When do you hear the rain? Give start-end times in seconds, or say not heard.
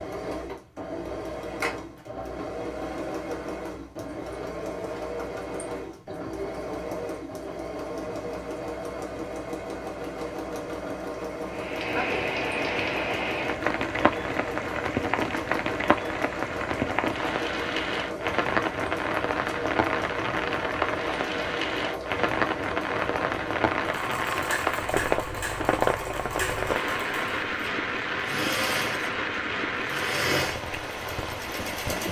11.4-32.0.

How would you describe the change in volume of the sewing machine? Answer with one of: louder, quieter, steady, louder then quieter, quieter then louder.
steady.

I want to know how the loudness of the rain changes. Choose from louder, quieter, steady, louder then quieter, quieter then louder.
steady.